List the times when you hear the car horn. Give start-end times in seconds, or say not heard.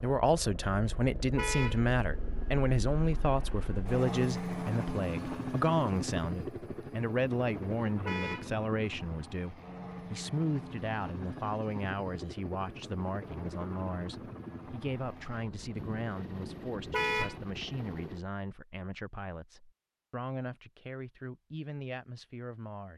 1.4-1.8, 8.1-8.5, 16.9-17.4.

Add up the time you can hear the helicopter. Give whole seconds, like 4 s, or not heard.
18 s.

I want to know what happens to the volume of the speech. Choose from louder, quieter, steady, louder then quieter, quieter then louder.
quieter.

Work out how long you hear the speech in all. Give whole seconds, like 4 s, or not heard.
23 s.